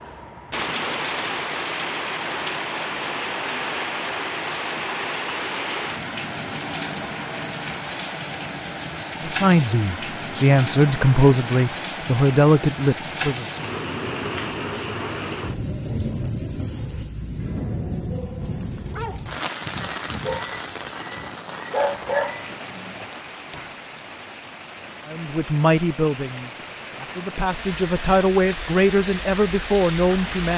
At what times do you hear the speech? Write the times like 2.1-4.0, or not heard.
9.2-13.4, 25.1-30.5.